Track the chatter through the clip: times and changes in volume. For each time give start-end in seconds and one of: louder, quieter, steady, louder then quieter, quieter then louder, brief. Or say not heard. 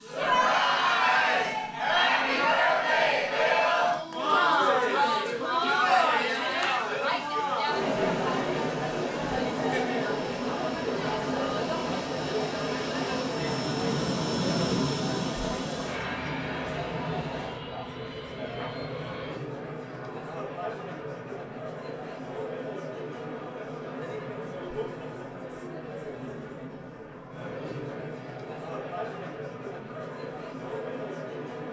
0.0-31.6 quieter.